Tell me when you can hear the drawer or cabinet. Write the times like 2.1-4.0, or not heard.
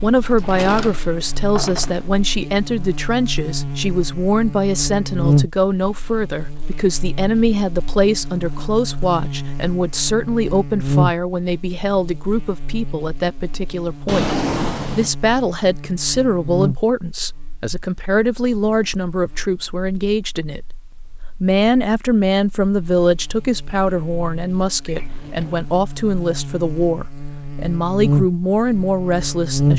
0.3-2.0, 14.1-15.1, 24.9-25.7.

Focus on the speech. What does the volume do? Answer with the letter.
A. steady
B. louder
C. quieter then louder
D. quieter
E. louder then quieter
A.